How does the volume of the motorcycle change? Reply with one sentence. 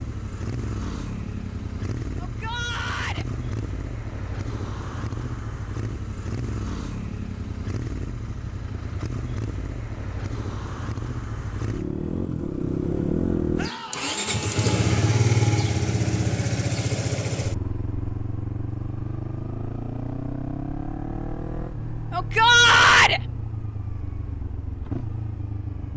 The volume of the motorcycle goes up, then down.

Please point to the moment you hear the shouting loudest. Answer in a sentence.
The loudest moment of the shouting is at 23 seconds.